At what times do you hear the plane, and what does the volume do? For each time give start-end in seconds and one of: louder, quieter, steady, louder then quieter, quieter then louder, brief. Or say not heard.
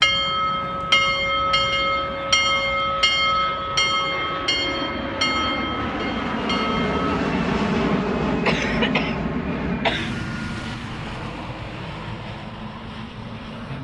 0.0-13.7 louder then quieter.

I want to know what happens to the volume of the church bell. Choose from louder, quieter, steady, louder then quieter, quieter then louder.
quieter.